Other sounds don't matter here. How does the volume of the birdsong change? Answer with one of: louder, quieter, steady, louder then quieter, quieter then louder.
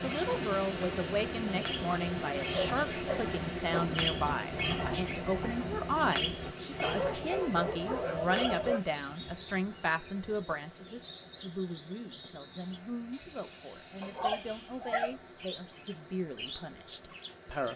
quieter.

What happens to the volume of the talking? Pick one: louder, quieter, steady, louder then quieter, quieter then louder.
quieter.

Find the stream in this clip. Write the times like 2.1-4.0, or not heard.
0.0-17.7.